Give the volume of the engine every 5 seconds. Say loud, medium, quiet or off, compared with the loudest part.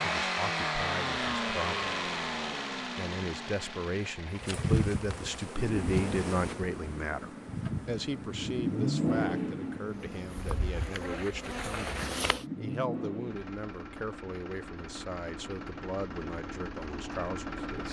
loud, loud, medium, medium.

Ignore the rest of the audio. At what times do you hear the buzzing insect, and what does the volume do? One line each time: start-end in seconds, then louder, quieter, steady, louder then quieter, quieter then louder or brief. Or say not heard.
4.3-12.4 quieter then louder.